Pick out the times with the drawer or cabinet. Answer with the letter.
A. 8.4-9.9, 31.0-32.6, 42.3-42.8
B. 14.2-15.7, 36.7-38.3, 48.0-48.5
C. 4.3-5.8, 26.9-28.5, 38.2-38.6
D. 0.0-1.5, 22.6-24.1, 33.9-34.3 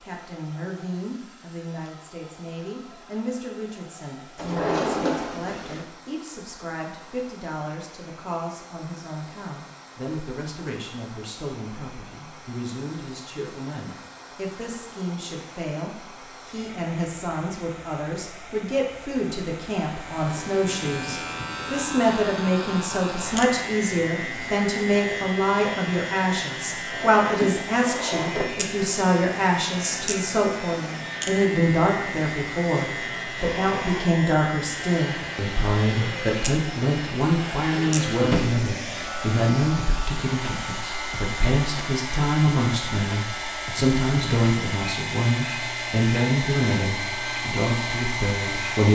C.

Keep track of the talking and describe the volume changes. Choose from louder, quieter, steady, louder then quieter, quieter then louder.
louder.